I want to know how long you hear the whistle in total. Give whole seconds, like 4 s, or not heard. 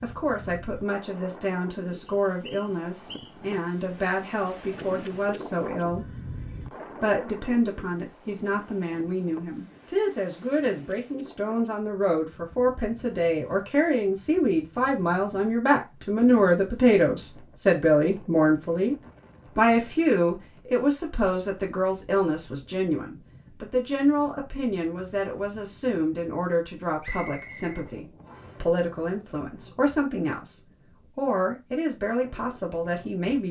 3 s.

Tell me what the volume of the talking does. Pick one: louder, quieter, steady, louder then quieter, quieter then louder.
louder then quieter.